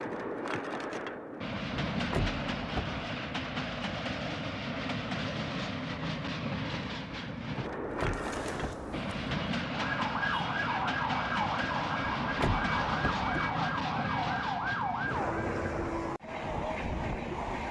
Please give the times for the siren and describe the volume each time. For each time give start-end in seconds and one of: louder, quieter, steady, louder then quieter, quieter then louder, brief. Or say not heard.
8.0-15.3 louder.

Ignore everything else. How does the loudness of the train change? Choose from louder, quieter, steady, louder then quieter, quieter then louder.
steady.